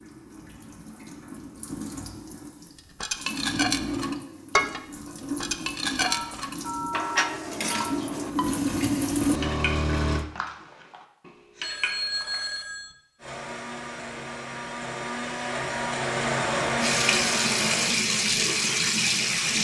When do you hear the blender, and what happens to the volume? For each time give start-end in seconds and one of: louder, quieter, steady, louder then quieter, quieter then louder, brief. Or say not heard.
13.2-17.9 louder.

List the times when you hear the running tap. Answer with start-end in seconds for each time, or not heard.
0.0-10.2, 16.8-19.5.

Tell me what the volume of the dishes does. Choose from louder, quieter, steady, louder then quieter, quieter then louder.
quieter.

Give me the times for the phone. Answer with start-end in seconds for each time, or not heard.
6.0-8.0, 11.6-12.9.